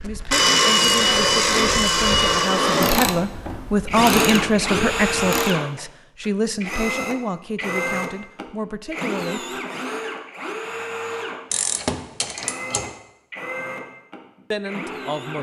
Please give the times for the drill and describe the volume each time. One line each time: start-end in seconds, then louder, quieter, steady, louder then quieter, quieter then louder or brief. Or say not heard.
0.0-15.3 quieter.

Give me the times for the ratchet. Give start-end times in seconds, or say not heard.
2.8-5.5, 11.5-13.0.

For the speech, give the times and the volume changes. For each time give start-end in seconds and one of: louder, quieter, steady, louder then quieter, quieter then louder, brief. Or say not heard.
0.0-9.6 louder then quieter
14.5-15.3 brief.